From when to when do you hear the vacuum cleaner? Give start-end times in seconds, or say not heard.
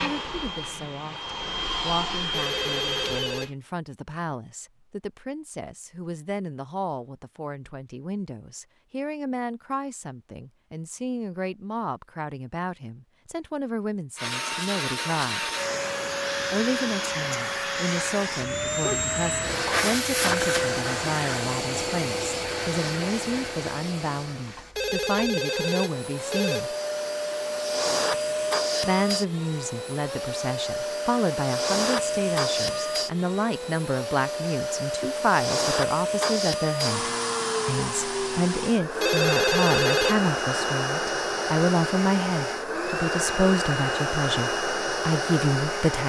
0.0-3.5, 14.2-46.0.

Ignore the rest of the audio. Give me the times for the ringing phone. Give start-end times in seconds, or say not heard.
2.3-3.5, 24.8-26.6, 39.0-40.1.